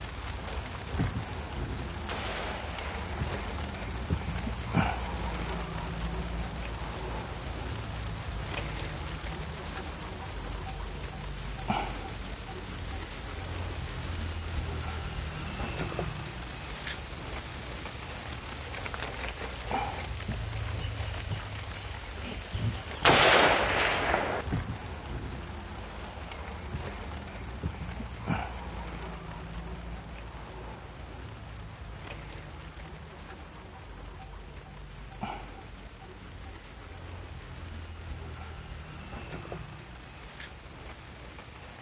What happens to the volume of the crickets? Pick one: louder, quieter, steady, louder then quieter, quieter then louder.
quieter.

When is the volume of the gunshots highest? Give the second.
23 s.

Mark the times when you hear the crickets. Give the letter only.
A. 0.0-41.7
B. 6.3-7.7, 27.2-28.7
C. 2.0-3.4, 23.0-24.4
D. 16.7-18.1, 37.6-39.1
A.